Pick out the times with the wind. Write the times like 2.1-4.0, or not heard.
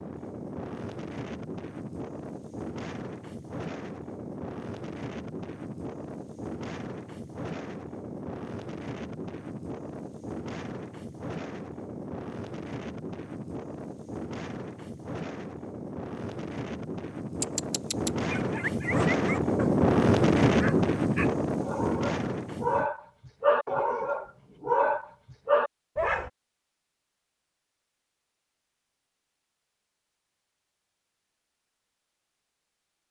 0.0-22.9.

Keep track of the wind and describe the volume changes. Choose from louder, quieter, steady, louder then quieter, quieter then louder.
louder.